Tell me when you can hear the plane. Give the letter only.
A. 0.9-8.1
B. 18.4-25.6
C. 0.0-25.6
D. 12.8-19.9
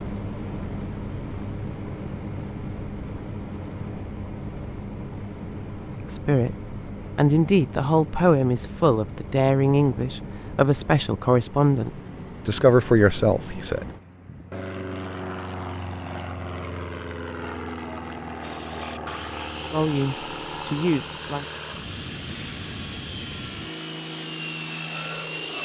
C.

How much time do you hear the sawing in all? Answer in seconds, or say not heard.
7 s.